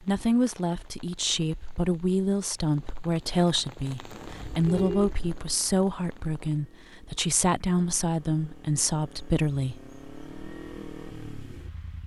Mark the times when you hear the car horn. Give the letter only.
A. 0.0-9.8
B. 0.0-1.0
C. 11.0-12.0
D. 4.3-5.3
D.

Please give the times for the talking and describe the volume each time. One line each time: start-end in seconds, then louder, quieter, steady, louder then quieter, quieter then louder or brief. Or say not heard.
0.0-9.8 steady.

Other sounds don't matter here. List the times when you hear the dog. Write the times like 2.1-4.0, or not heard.
not heard.